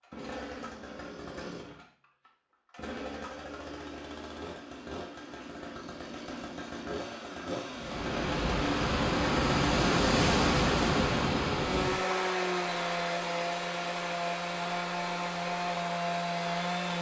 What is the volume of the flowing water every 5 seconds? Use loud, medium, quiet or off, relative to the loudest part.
off, loud, loud, medium.